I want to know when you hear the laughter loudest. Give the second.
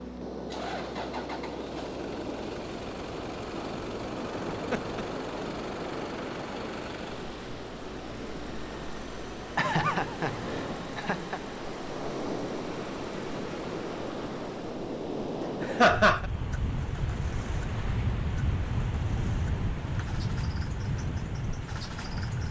16 s.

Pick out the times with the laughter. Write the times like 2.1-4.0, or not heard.
4.5-5.0, 9.6-11.4, 15.6-16.3.